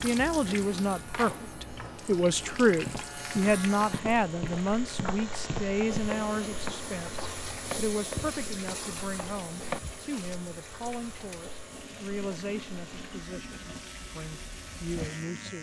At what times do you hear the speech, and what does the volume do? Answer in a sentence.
You can hear the speech from 0.0 to 15.5 s, getting quieter.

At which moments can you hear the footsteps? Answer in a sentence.
You can hear the footsteps from 2.8 to 10.4 s.